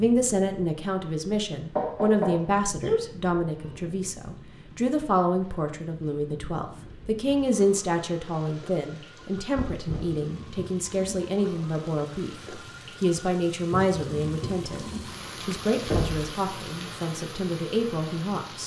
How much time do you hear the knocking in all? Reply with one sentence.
The knocking can be heard for 2 seconds in total.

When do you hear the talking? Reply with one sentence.
The talking can be heard from 0.0 to 14.8 s and from 15.4 to 18.6 s.